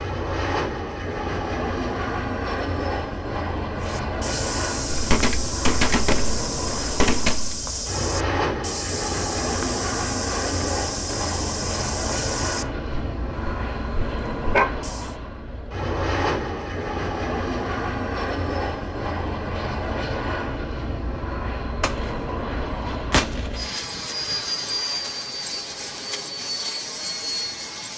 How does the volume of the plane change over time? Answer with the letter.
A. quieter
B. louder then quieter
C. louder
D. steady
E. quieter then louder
D.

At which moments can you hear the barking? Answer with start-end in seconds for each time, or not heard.
13.3-14.7.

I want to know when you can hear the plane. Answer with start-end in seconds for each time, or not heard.
0.0-27.9.